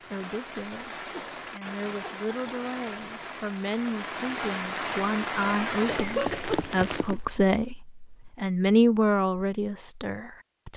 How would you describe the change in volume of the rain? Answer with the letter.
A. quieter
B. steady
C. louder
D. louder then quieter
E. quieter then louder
C.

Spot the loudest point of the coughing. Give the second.
6 s.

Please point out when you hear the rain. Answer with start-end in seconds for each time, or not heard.
0.0-7.2.